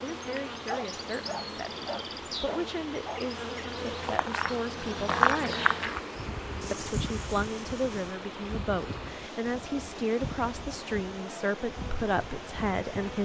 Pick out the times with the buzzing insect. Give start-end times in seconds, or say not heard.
0.0-13.1.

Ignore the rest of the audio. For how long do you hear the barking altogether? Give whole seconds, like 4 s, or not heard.
4 s.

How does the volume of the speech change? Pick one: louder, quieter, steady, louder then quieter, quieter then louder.
louder.